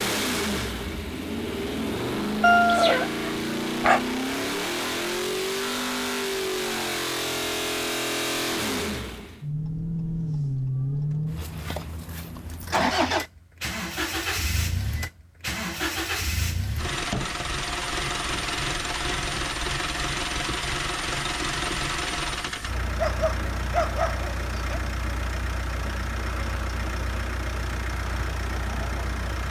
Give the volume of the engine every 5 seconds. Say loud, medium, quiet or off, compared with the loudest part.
loud, loud, loud, loud, loud, medium.